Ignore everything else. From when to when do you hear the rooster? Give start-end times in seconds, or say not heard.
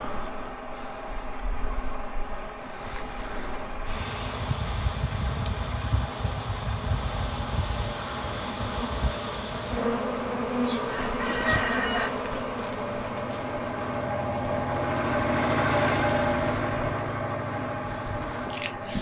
10.7-12.1.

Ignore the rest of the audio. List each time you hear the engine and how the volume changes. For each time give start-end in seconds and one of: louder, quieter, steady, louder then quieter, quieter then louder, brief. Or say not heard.
0.0-18.9 louder.